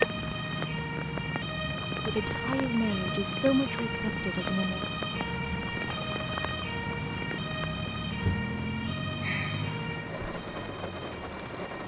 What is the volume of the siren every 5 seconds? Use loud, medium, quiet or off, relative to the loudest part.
loud, loud, medium.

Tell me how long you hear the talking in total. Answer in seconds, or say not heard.
3 s.